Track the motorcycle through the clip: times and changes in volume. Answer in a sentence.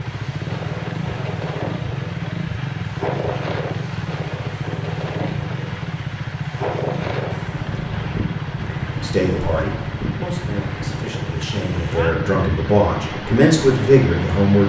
You can hear the motorcycle from 0.0 to 14.6 s, at a steady volume.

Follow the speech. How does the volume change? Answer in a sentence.
The loudness of the speech goes down, then up.